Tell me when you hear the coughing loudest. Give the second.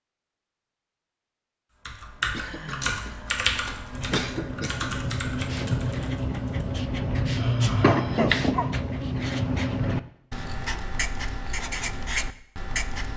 8 s.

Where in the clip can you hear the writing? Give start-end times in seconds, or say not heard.
3.9-13.1.